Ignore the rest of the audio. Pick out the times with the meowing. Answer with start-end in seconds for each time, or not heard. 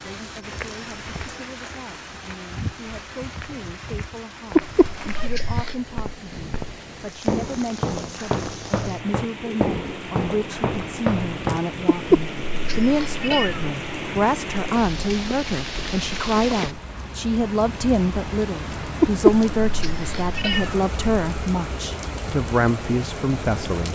4.5-5.8, 11.8-13.7, 19.0-20.8.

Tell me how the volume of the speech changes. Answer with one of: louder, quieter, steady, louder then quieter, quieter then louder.
louder.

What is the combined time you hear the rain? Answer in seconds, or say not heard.
24 s.